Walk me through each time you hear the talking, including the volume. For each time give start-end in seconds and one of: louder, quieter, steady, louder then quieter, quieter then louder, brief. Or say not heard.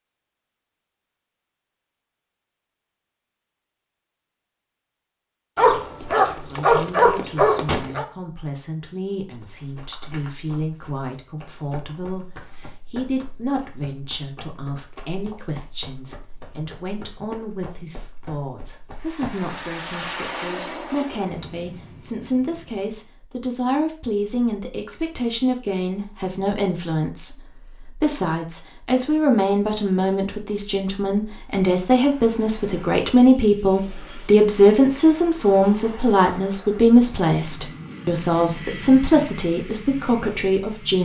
6.5-41.0 louder.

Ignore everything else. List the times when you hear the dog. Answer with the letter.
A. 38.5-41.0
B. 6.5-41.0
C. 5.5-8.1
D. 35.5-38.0
C.